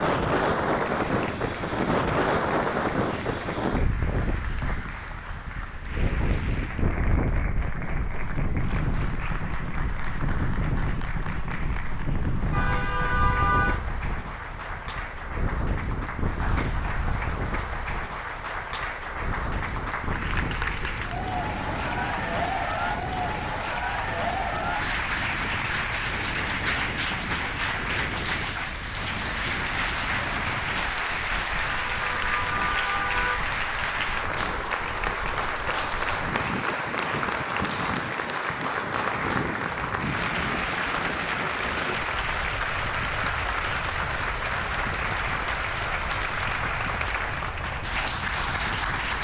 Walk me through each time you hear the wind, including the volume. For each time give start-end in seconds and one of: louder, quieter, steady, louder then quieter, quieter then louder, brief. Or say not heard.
0.0-49.1 quieter.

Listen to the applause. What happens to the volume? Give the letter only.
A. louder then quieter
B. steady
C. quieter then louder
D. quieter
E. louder
E.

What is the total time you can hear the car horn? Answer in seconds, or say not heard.
3 s.